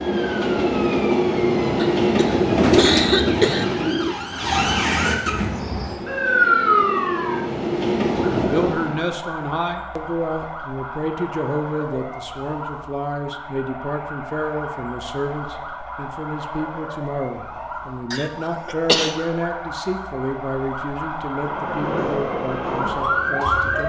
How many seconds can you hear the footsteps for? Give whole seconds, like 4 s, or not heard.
not heard.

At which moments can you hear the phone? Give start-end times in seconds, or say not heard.
not heard.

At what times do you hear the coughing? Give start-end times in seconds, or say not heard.
1.8-3.6, 18.1-19.1.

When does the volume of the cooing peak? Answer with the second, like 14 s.
3 s.